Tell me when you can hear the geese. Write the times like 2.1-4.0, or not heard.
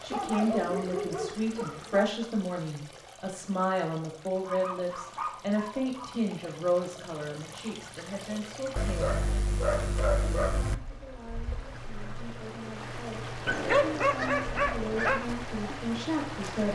not heard.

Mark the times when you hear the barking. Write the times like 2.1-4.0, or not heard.
0.1-2.0, 4.3-6.2, 8.8-10.8, 13.4-15.2.